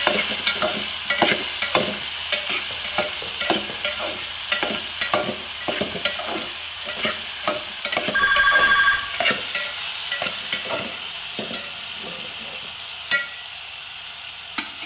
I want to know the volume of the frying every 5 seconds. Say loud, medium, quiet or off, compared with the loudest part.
loud, loud, medium.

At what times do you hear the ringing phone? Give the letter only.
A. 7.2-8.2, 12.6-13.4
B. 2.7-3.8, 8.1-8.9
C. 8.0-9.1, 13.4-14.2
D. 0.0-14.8
B.